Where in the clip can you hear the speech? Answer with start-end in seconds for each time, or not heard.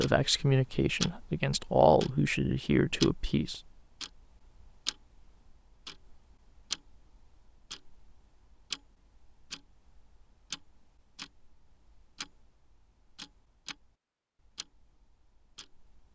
0.0-3.6.